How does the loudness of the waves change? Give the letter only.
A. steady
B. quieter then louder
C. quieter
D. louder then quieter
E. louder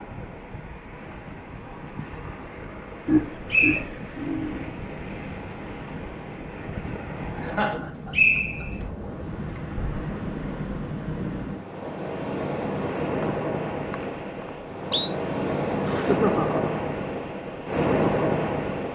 E.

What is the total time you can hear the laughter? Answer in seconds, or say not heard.
4 s.